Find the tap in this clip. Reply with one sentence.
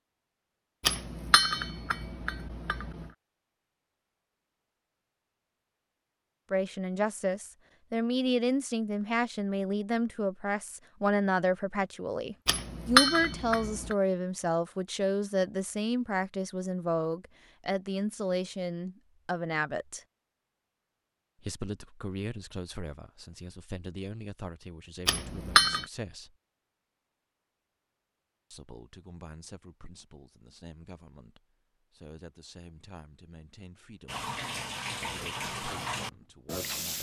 The tap can be heard from 34.0 to 36.9 s.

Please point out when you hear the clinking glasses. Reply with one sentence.
The clinking glasses can be heard from 0.8 to 3.1 s, from 12.4 to 13.9 s and from 25.1 to 25.9 s.